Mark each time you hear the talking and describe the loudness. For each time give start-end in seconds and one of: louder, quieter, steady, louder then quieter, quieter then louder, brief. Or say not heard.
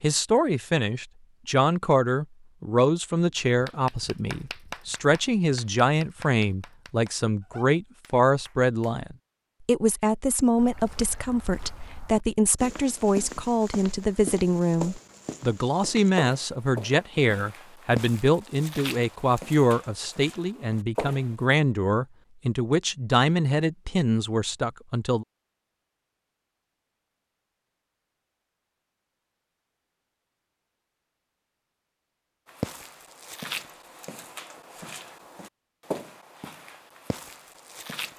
0.0-25.2 steady.